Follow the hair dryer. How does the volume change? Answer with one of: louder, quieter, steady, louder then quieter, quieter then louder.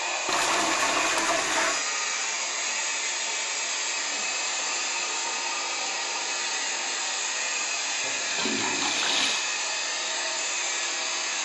steady.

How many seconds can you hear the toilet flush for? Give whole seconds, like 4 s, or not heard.
3 s.